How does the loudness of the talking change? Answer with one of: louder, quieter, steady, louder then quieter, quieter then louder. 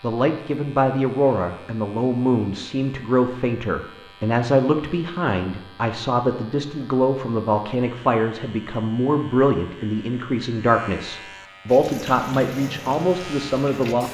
steady.